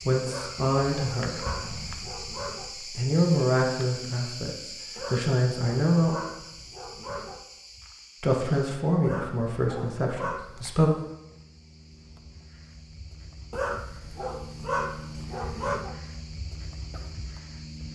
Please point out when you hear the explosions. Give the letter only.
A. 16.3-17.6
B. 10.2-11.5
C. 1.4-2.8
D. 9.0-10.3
C.